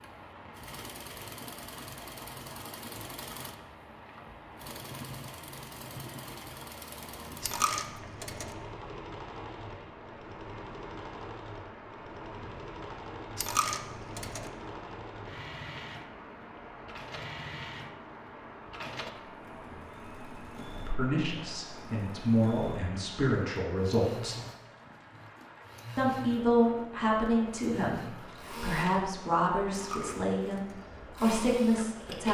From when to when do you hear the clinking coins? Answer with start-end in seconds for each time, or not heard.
7.4-8.6, 13.3-14.5, 29.7-30.9.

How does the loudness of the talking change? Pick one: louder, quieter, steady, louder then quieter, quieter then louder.
steady.